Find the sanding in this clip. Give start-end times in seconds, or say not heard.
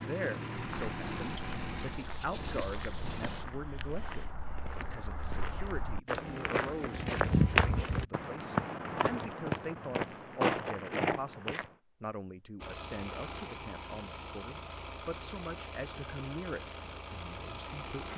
not heard.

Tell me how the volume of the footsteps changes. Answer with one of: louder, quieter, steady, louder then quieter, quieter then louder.
louder.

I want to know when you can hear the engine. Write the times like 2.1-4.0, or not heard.
0.0-3.5, 12.6-18.1.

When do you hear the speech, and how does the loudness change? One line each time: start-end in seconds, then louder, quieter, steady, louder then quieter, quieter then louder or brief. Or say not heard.
0.0-18.1 steady.